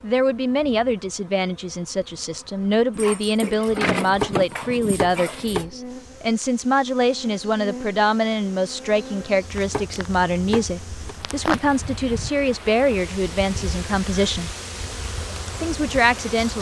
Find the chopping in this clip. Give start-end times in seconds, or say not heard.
3.6-6.1, 9.2-11.2.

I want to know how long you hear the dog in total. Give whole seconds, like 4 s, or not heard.
3 s.